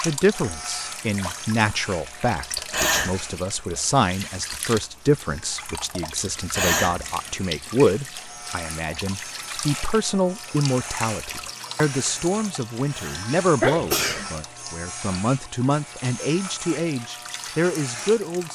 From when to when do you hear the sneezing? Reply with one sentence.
You can hear the sneezing from 2.7 to 3.2 s, from 6.5 to 7.1 s and from 12.9 to 14.3 s.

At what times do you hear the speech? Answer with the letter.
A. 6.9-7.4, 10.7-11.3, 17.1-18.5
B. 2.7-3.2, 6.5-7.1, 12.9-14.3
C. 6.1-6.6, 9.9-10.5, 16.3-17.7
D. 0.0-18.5
D.